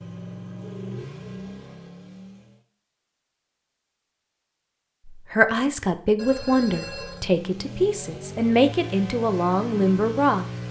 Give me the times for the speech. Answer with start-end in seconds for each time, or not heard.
5.1-10.4.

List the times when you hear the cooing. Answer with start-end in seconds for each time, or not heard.
not heard.